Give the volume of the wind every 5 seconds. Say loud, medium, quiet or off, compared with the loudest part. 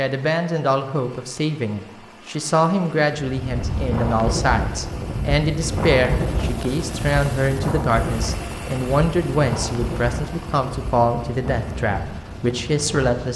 loud, loud, medium.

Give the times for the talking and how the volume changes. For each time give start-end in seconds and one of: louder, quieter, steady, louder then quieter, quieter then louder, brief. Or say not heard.
0.0-13.3 steady.